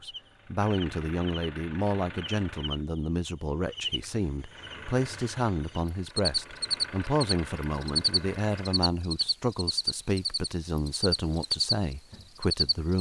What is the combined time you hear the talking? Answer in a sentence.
The talking can be heard for 13 seconds in total.